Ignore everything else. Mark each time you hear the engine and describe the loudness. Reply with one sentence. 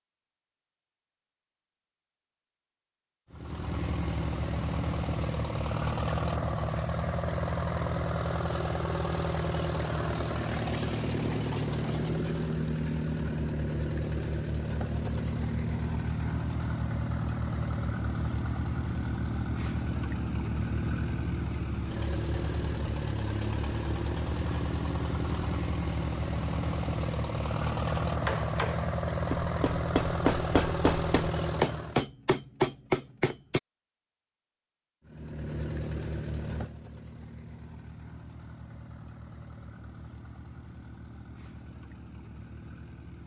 You can hear the engine from 3.3 to 32.0 s, at a steady volume; and from 35.0 to 43.2 s, getting quieter.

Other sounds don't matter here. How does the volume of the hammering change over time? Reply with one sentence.
The volume of the hammering goes up.